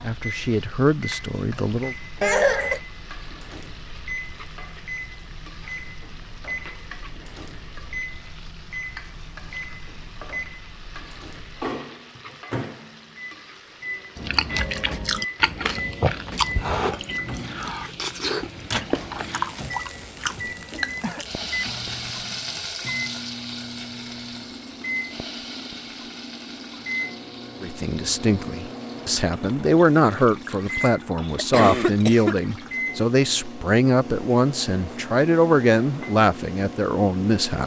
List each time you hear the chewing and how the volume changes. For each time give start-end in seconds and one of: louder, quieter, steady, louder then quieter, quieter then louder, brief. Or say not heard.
14.2-22.1 quieter.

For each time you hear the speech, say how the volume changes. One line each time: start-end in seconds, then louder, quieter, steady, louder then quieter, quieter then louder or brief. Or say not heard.
0.0-1.9 brief
27.6-37.6 steady.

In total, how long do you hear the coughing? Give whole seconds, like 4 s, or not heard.
3 s.